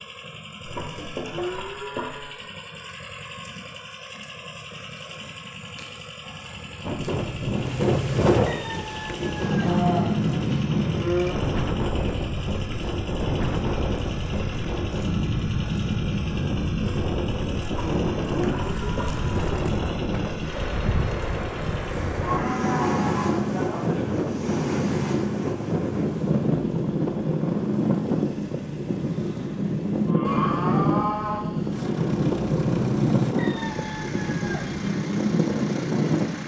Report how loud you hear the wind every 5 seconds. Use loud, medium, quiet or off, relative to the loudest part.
off, loud, loud, loud, loud, loud, loud, loud.